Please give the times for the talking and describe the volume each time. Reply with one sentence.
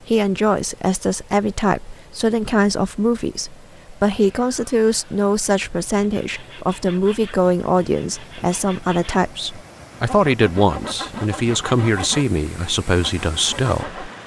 The talking can be heard from 0.1 to 14.0 s, at a steady volume.